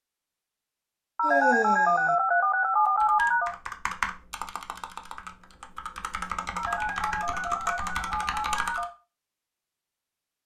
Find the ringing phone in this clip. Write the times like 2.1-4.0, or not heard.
1.1-3.5, 6.5-8.9.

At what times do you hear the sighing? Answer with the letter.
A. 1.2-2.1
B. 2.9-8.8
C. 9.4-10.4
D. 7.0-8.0
A.